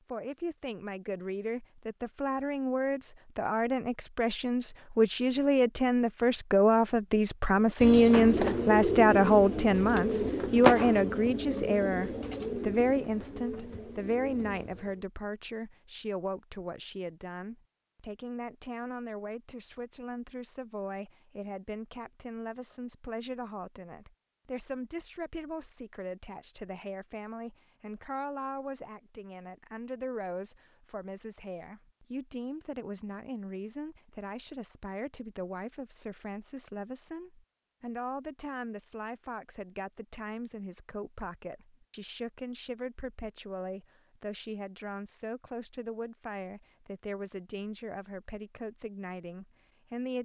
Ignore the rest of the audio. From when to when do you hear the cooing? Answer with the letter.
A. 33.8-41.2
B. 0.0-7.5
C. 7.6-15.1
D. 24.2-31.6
C.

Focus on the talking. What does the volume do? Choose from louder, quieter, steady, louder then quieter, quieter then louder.
quieter.